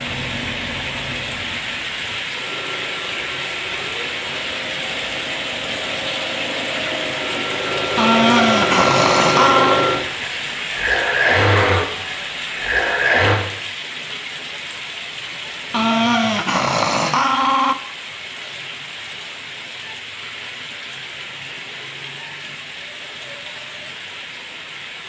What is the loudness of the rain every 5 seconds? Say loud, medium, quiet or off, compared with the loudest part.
loud, loud, loud, medium, medium.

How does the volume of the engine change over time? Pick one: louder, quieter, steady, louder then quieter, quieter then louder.
louder.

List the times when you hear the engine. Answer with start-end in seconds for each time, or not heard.
0.0-13.4.